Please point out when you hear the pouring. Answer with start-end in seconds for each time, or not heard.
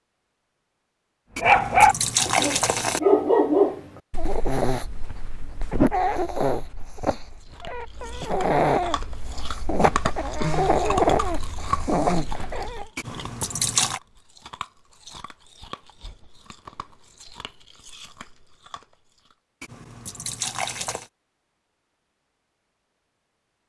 1.4-3.0, 12.9-14.0, 19.6-21.1.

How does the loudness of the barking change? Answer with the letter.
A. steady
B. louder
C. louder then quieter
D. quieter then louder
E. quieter
D.